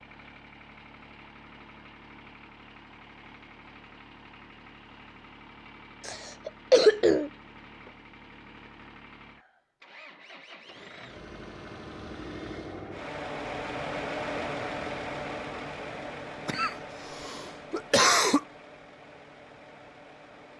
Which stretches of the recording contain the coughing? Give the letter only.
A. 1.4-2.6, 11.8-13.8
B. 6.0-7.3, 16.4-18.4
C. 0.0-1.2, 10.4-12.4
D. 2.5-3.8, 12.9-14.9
B.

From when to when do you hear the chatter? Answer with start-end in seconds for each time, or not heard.
not heard.